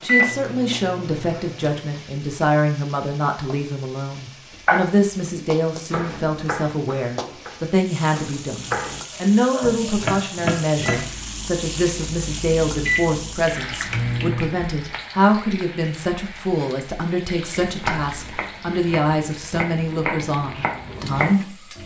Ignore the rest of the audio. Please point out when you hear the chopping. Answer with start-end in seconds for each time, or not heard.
4.7-11.1, 17.6-21.8.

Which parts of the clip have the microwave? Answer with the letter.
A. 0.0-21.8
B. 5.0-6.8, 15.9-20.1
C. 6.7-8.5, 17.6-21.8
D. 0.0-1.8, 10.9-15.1
D.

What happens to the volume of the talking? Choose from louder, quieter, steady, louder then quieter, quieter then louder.
steady.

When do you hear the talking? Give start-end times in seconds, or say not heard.
0.0-21.8.